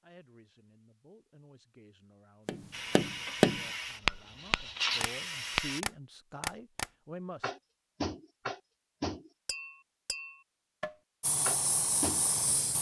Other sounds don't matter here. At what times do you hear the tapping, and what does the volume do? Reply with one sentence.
You can hear the tapping from 2.5 to 12.3 s, getting quieter.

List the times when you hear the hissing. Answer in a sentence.
The hissing can be heard from 2.7 to 5.8 s and from 11.2 to 12.7 s.